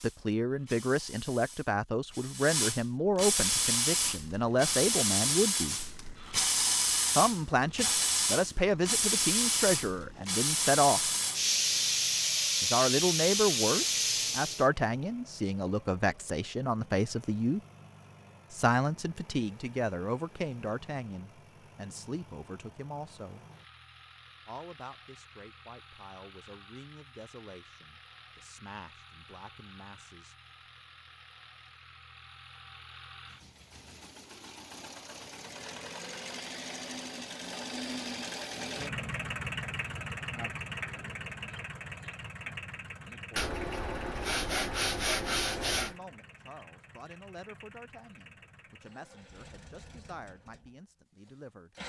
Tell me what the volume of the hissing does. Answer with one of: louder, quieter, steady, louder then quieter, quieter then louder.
louder.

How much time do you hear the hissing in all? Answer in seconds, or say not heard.
15 s.